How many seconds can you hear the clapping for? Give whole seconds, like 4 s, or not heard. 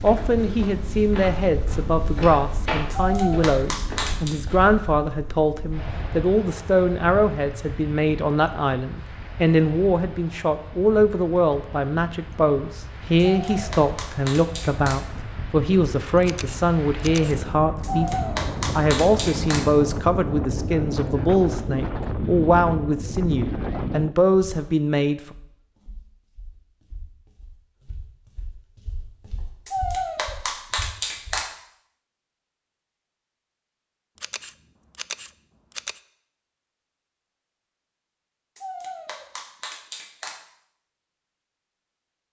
9 s.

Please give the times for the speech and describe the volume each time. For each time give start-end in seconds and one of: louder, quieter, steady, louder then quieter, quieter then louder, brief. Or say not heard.
0.0-25.4 steady.